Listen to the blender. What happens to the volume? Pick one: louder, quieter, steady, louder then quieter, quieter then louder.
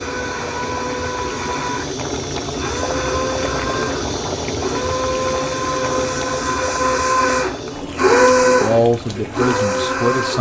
louder.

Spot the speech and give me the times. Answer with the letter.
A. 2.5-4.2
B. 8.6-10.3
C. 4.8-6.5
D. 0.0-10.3
B.